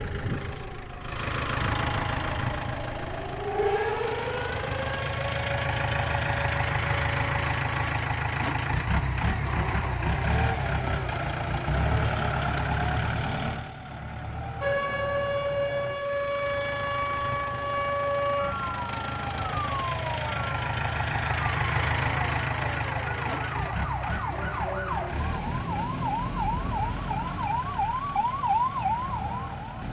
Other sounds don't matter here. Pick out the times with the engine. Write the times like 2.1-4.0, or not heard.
0.0-29.8.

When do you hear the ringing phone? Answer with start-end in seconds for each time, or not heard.
not heard.